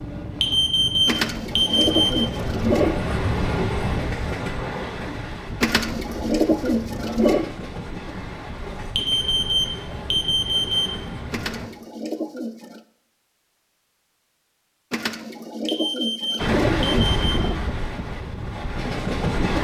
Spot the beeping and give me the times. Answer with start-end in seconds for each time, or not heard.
0.4-2.2, 8.9-10.9, 15.7-17.3.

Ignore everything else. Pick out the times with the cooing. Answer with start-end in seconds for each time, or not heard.
1.1-3.0, 5.6-7.5, 11.3-12.8, 14.9-17.6.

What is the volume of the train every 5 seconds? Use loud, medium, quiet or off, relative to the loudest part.
loud, medium, medium, loud.